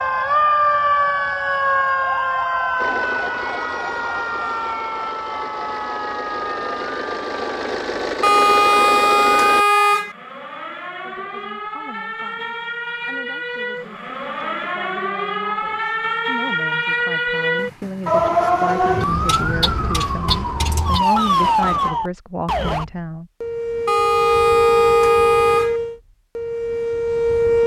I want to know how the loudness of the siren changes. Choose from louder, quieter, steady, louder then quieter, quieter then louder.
quieter then louder.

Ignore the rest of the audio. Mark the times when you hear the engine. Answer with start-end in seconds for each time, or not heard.
2.8-9.7.